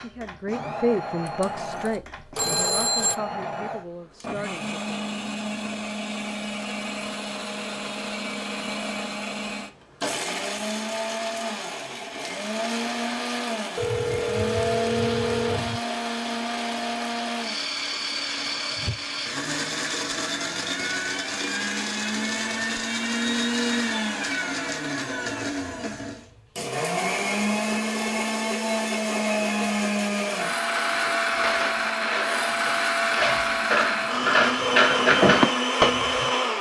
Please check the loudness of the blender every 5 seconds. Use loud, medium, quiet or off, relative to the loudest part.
medium, medium, medium, medium, loud, loud, loud, loud.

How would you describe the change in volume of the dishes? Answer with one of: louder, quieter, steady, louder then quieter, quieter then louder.
louder.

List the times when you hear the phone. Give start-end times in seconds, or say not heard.
1.2-3.1, 13.8-15.8, 31.3-31.9.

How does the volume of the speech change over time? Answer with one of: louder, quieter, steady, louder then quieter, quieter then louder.
quieter.